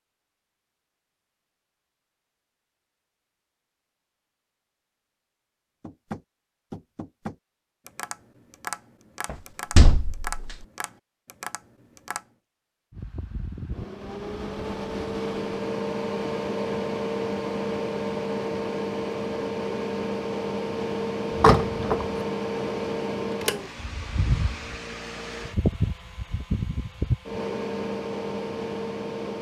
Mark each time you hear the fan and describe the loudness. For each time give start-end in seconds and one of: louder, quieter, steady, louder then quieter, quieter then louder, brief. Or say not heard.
12.9-29.3 steady.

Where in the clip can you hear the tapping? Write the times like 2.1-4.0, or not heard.
5.8-12.2.